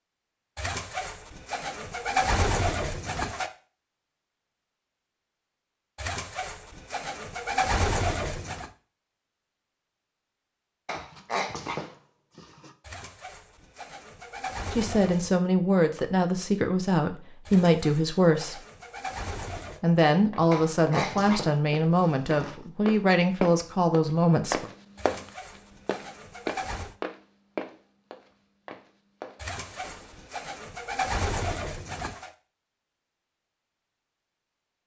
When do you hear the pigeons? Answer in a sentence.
You can hear the pigeons from 0.6 to 3.5 s, from 6.0 to 8.7 s, from 12.8 to 15.4 s, from 17.4 to 19.8 s, from 24.9 to 26.9 s and from 29.4 to 32.3 s.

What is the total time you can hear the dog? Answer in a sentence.
You can hear the dog for 4 seconds altogether.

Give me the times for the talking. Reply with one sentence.
The talking can be heard from 14.7 to 18.6 s and from 19.8 to 24.7 s.